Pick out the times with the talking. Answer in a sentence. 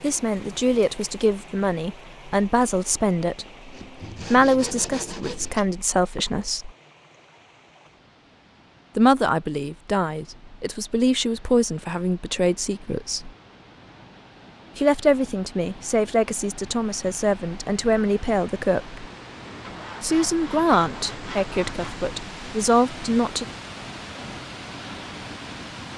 You can hear the talking from 0.0 to 3.5 s, from 4.3 to 6.7 s, from 8.9 to 13.3 s, from 14.8 to 19.1 s and from 20.0 to 23.4 s.